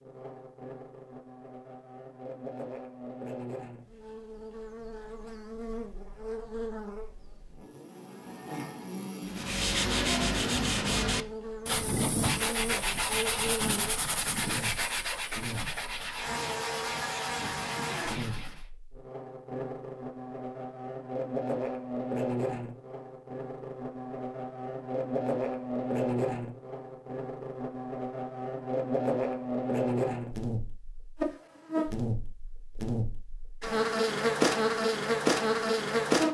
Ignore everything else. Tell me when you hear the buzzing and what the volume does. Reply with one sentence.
The buzzing can be heard from 0.0 to 36.2 s, getting louder.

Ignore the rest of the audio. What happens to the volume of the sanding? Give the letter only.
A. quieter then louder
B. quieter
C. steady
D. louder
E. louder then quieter
B.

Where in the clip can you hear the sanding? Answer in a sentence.
The sanding can be heard from 9.2 to 18.6 s.